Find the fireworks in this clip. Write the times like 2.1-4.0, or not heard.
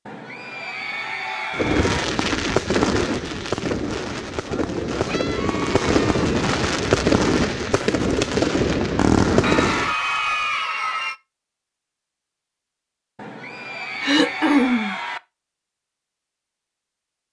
1.5-9.9.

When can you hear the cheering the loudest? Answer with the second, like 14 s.
10 s.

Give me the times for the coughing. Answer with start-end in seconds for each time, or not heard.
14.0-14.9.